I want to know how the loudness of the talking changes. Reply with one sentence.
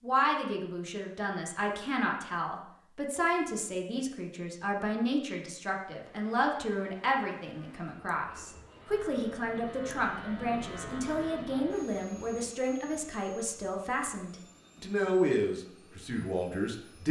The volume of the talking stays about the same.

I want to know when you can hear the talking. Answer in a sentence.
You can hear the talking from 0.0 to 17.0 s.